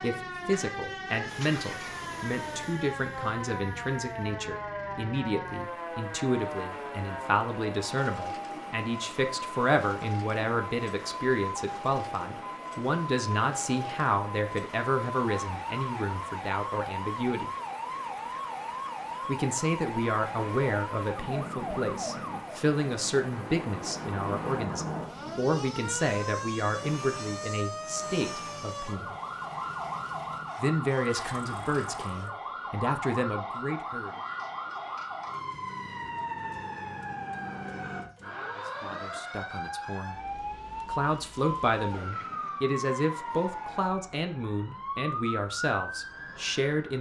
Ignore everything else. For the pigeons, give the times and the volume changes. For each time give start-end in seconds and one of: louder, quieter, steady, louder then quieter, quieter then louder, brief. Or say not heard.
not heard.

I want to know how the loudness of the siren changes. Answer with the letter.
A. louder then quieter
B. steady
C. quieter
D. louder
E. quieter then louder
B.